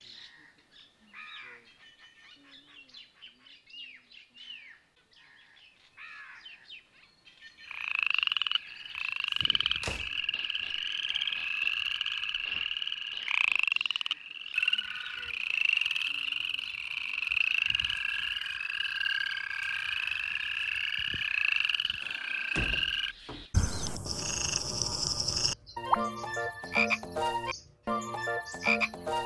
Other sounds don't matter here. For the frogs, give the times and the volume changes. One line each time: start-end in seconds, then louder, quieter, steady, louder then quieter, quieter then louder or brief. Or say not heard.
7.7-29.2 steady.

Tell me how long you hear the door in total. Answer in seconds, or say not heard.
3 s.